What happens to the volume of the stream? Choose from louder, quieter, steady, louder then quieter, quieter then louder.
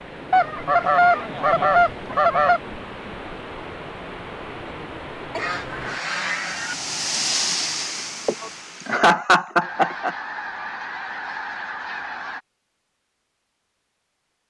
louder.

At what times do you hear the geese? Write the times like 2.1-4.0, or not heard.
0.3-2.6, 5.3-6.8, 9.6-12.4.